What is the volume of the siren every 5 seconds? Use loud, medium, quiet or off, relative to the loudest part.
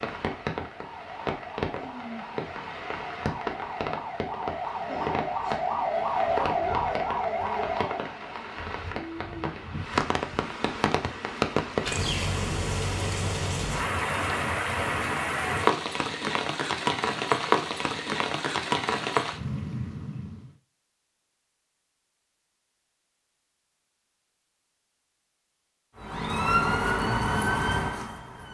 medium, loud, off, off, off, loud.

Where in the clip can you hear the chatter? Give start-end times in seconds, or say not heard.
not heard.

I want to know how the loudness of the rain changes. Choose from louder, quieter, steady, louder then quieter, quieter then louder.
louder.